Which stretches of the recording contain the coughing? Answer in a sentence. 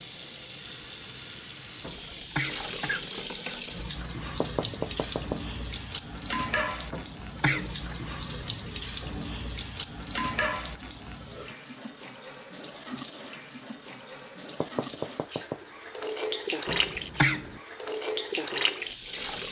The coughing can be heard from 1.8 to 3.1 s, from 6.9 to 8.0 s and from 16.6 to 17.6 s.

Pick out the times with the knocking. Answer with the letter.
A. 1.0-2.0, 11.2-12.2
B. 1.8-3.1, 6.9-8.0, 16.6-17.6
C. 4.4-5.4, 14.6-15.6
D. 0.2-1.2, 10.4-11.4
C.